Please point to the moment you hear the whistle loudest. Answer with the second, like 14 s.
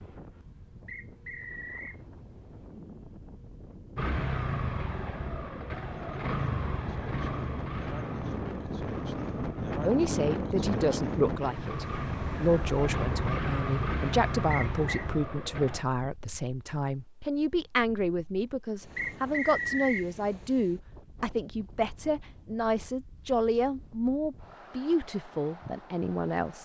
20 s.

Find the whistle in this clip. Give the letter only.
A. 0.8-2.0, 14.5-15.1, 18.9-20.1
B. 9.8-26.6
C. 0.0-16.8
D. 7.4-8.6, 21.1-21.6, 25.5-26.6
A.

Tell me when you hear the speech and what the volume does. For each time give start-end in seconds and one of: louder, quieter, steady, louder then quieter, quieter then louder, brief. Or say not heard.
9.8-26.6 steady.